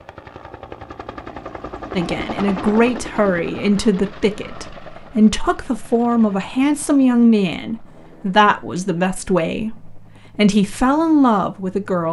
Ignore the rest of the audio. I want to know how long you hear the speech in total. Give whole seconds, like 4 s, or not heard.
10 s.